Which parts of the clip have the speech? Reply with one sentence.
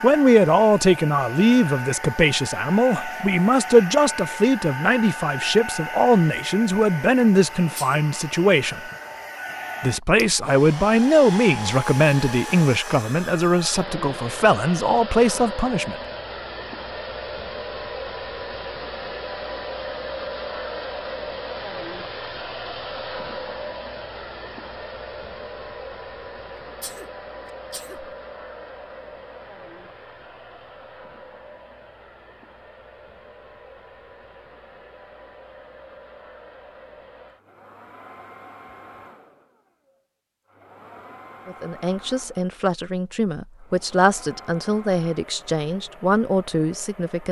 The speech can be heard from 0.0 to 8.8 s, from 9.8 to 15.9 s and from 41.5 to 47.2 s.